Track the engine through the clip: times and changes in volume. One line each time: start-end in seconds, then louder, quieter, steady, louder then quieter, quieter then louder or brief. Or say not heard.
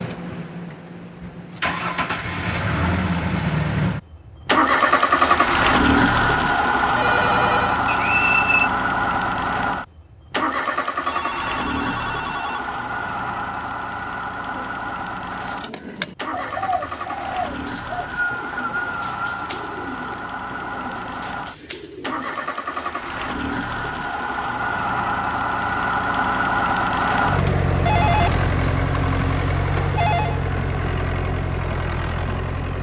0.0-32.7 quieter then louder.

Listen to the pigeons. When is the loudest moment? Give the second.
17 s.